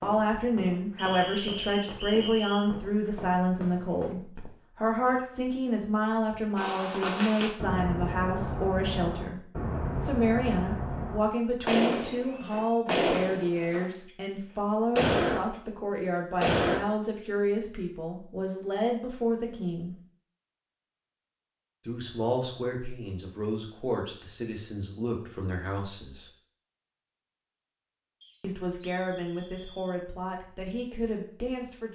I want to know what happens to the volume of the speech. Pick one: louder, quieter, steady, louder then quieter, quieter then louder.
quieter.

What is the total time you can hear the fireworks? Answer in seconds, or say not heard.
9 s.